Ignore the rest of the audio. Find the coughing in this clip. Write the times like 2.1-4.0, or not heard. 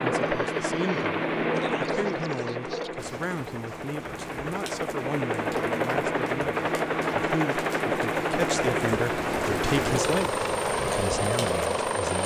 not heard.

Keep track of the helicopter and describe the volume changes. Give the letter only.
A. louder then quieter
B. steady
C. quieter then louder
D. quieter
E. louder
C.